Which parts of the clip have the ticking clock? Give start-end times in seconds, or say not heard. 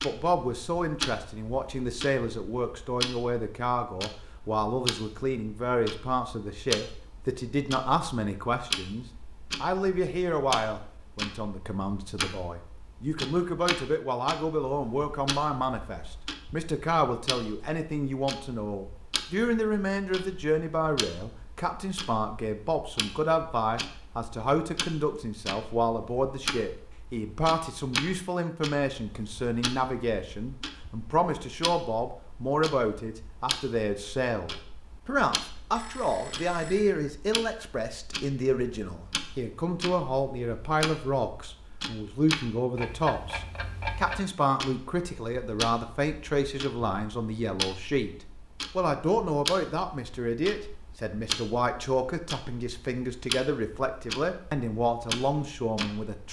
0.0-56.2.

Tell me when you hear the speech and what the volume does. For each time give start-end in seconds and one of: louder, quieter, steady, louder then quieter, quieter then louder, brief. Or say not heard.
0.0-48.1 steady
48.8-56.2 steady.